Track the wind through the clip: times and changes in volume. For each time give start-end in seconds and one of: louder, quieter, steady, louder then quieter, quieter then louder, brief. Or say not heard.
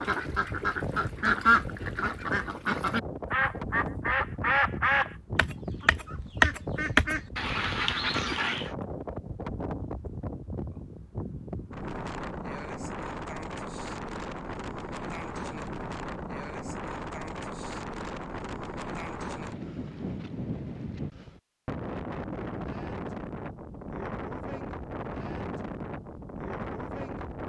0.0-27.4 steady.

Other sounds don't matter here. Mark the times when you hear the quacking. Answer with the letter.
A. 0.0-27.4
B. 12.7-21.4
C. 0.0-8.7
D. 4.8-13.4
C.